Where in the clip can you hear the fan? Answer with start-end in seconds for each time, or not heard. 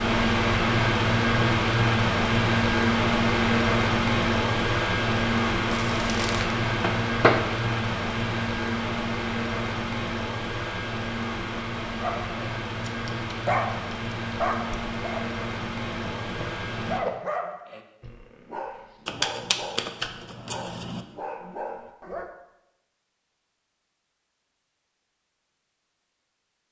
0.0-17.0.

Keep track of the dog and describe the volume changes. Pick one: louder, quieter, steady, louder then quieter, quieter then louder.
quieter.